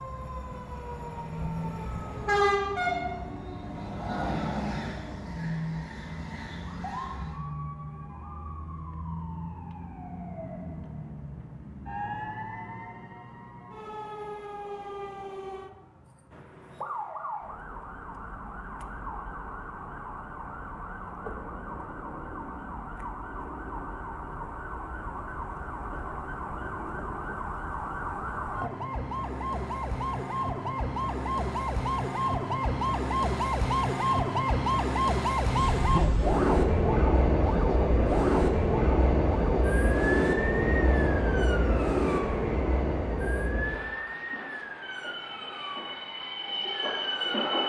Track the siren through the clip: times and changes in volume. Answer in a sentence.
You can hear the siren from 0.0 to 47.6 s, getting louder then quieter.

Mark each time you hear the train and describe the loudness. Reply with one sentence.
You can hear the train from 0.0 to 7.4 s, getting louder then quieter; and from 35.5 to 47.6 s, getting quieter.